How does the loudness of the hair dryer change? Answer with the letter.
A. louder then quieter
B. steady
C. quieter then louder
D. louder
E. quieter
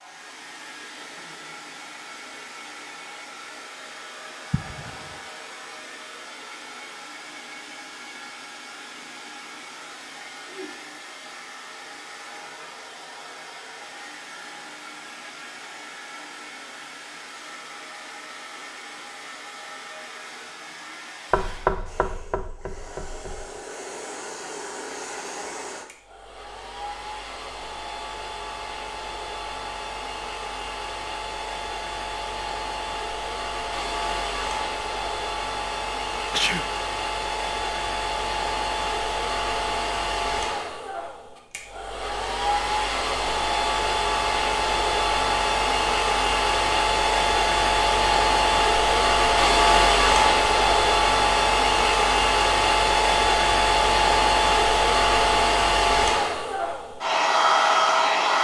D.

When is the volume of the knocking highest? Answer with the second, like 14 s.
22 s.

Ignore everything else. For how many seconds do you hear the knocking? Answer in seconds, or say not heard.
2 s.